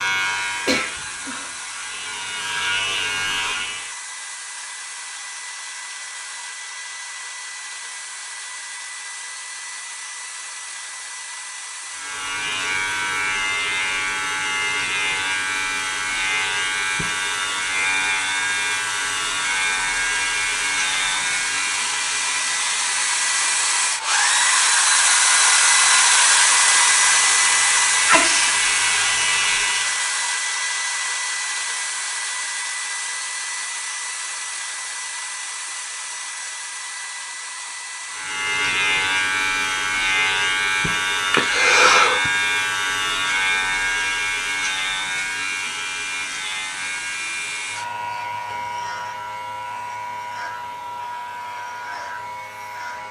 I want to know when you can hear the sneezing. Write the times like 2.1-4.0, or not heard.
0.7-1.5, 28.1-28.5, 41.3-42.3.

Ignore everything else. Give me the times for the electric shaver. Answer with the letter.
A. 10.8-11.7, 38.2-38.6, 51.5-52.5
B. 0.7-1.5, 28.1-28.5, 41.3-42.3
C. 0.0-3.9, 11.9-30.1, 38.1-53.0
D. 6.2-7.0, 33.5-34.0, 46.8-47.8
C.